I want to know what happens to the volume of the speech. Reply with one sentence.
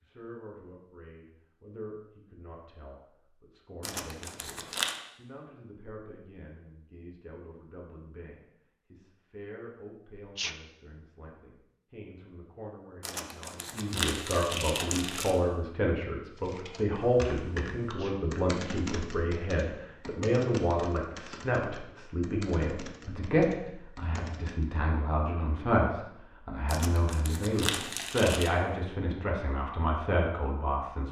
The loudness of the speech goes up.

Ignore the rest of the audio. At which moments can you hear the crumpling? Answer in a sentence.
You can hear the crumpling from 3.8 to 5.0 s, from 13.0 to 15.4 s and from 26.6 to 28.5 s.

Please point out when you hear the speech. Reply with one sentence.
The speech can be heard from 0.0 to 31.0 s.